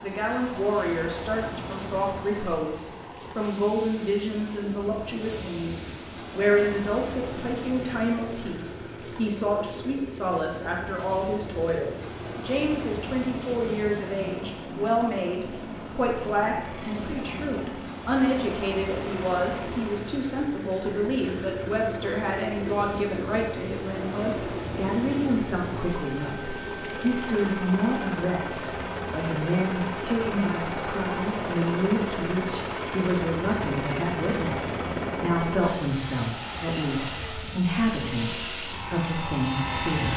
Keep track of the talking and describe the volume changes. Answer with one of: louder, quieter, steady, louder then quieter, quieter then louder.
steady.